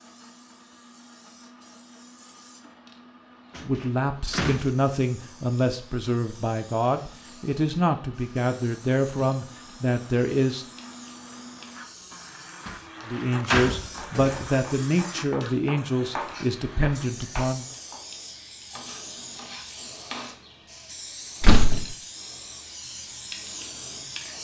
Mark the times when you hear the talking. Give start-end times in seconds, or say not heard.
3.6-10.7, 13.1-17.6.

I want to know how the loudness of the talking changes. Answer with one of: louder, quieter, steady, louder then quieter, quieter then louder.
steady.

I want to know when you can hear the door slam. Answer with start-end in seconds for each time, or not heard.
3.5-4.7, 12.7-14.5, 21.4-21.9.